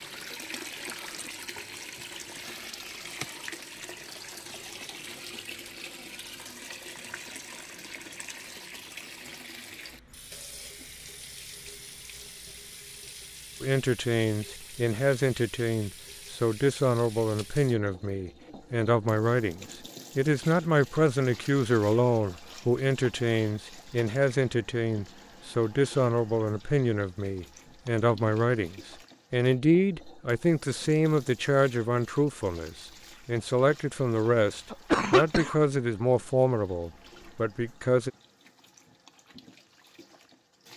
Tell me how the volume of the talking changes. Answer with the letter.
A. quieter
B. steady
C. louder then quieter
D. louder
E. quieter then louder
B.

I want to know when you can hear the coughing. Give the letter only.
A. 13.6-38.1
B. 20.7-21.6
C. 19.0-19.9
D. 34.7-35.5
D.